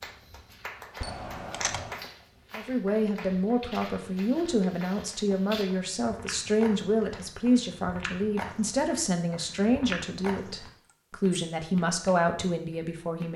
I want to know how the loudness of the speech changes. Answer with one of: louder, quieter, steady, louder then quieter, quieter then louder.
steady.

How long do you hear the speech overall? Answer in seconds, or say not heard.
11 s.